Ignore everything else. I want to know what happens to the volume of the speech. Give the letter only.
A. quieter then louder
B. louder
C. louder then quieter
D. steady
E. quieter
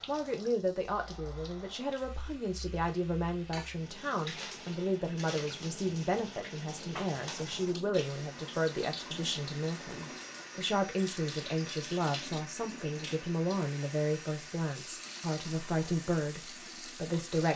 D.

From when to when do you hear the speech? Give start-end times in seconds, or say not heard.
0.1-17.5.